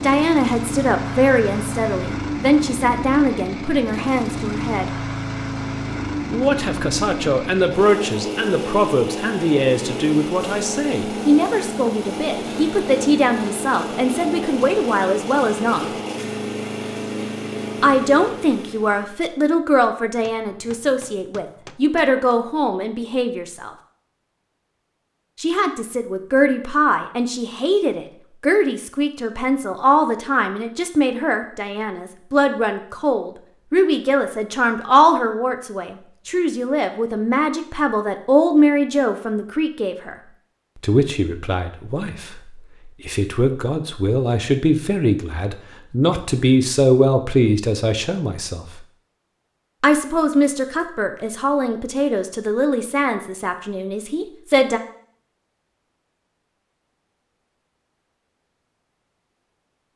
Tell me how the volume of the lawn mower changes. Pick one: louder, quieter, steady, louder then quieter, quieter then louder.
steady.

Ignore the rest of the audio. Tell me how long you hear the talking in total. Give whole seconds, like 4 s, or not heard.
48 s.